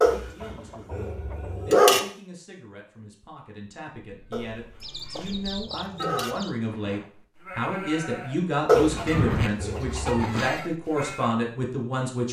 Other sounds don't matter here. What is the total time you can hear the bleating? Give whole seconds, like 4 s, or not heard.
7 s.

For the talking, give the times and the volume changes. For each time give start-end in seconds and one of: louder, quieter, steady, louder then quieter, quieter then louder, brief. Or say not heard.
0.0-12.2 louder.